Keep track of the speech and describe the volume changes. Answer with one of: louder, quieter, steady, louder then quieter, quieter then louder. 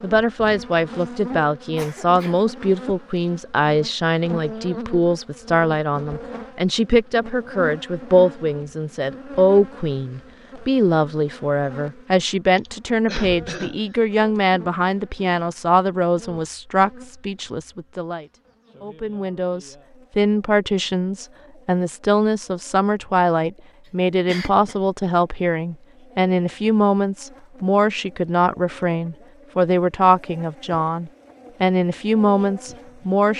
steady.